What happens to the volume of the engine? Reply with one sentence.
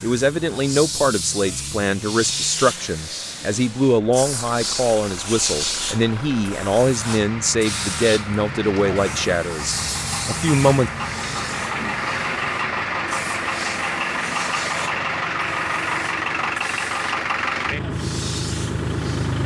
The volume of the engine goes up.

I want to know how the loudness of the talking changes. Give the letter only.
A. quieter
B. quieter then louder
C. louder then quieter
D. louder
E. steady
E.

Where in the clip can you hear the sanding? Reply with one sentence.
You can't hear the sanding here.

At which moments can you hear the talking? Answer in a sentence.
You can hear the talking from 0.0 to 10.9 s.